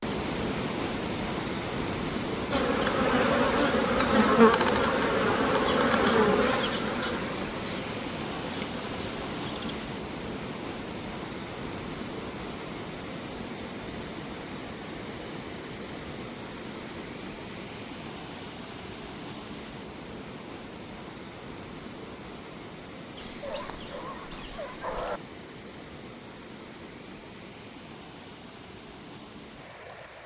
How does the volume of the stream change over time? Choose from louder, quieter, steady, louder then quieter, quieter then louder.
quieter.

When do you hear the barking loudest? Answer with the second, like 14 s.
25 s.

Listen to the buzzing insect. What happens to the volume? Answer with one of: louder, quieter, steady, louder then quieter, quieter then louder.
quieter.